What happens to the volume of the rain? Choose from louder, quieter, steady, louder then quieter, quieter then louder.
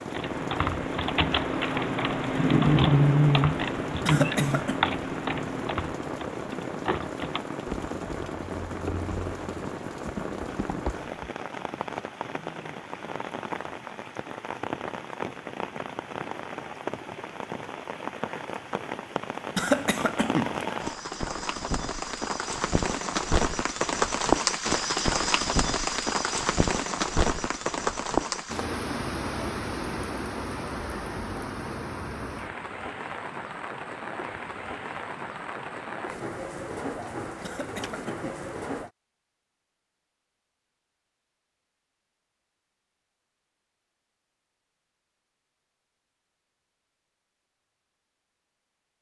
louder then quieter.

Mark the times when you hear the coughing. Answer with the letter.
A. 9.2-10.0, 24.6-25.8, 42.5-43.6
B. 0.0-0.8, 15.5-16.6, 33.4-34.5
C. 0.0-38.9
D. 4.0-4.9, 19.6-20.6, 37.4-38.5
D.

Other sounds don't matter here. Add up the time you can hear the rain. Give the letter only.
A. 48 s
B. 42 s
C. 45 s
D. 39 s
D.